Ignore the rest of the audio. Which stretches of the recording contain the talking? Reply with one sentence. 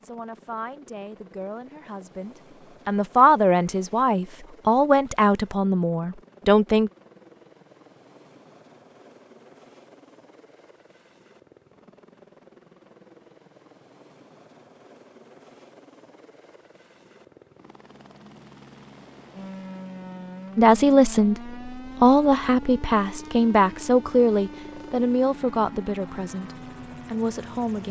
You can hear the talking from 0.0 to 6.9 s and from 20.6 to 27.8 s.